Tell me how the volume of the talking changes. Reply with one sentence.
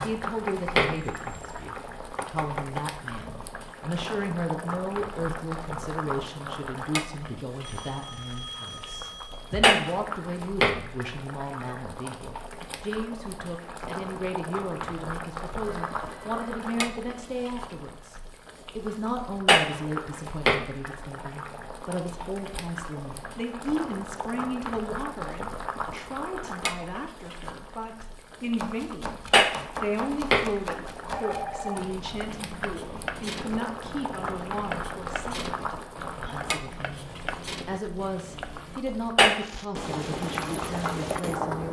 The volume of the talking stays about the same.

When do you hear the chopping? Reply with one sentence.
You can hear the chopping from 0.0 to 2.9 s and from 28.6 to 38.8 s.